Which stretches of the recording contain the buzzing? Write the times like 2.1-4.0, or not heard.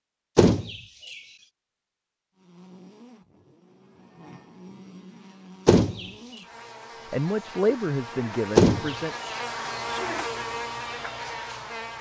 2.4-11.9.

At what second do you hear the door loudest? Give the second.
9 s.